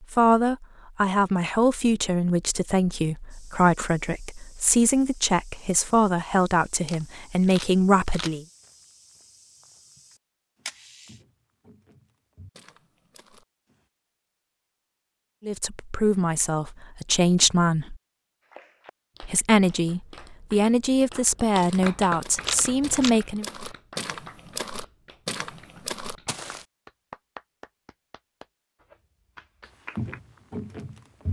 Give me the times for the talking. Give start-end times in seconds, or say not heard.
0.0-8.4, 15.4-17.9, 19.2-23.4.